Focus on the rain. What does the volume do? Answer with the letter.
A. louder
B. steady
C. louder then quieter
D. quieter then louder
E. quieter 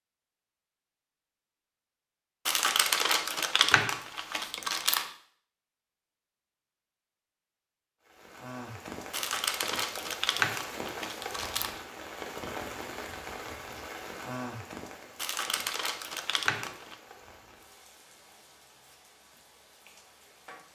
E.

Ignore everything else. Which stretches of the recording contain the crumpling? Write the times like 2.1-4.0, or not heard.
2.5-5.1, 9.1-11.8, 15.2-16.9.